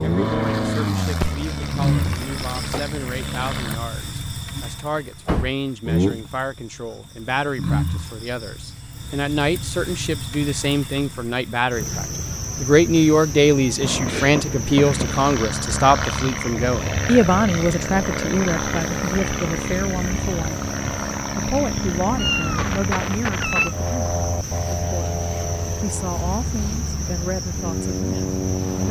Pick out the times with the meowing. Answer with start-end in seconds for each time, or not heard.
1.1-2.9, 13.8-15.2, 22.1-23.8.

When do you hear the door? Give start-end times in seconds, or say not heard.
5.0-5.5.